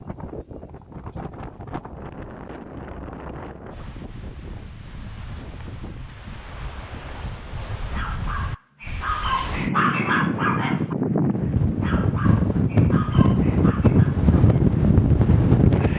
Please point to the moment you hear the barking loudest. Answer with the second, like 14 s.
10 s.